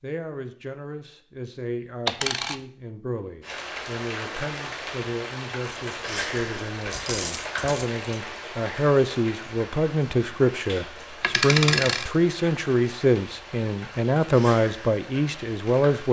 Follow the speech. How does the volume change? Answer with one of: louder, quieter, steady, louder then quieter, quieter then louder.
louder.